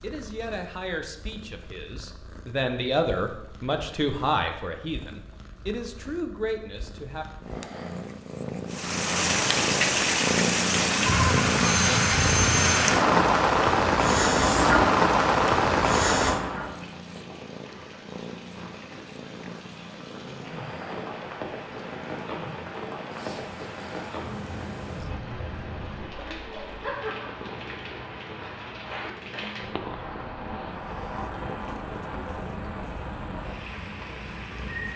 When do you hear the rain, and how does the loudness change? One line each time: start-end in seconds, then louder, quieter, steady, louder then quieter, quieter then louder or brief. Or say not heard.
8.7-34.9 quieter.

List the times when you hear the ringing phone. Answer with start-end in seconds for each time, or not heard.
11.6-13.0.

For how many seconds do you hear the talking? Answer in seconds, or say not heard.
7 s.